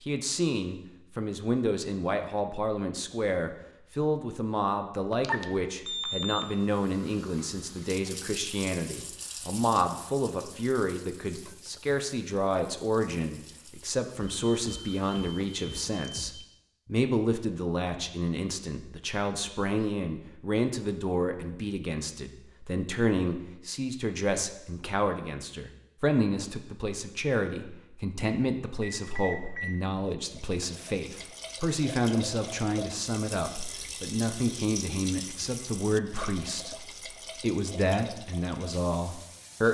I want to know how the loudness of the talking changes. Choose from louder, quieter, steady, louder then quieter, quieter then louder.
steady.